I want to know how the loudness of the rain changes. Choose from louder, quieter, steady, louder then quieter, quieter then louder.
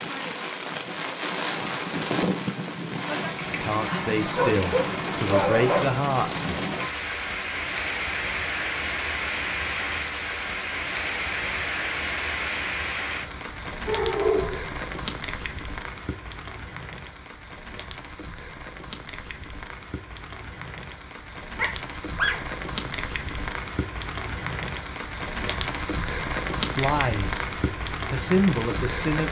quieter then louder.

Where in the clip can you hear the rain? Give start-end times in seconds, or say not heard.
0.0-29.2.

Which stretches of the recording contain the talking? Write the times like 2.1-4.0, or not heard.
3.6-6.5, 26.7-29.2.